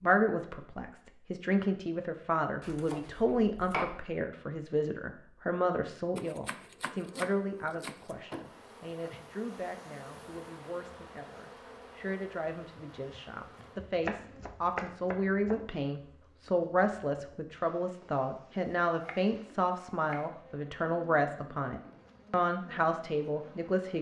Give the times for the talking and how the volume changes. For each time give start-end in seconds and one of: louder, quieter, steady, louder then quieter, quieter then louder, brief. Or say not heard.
0.0-23.9 quieter then louder.